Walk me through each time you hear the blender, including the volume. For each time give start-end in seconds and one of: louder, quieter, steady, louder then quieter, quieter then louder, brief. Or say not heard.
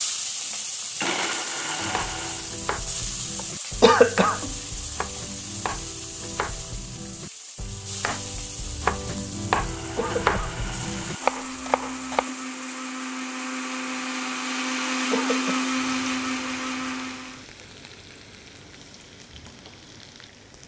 0.0-2.5 brief
9.6-17.4 louder.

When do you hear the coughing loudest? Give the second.
4 s.